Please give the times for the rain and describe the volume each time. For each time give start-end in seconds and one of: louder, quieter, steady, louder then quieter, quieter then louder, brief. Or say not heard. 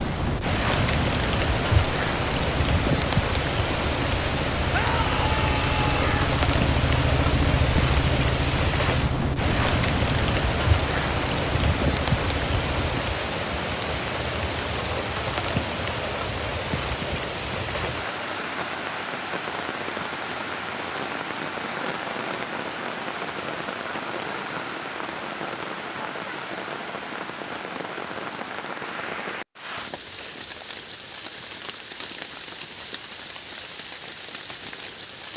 0.0-35.3 quieter.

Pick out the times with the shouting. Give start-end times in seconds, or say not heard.
4.7-6.3.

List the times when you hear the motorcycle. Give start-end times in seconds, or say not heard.
0.0-13.0.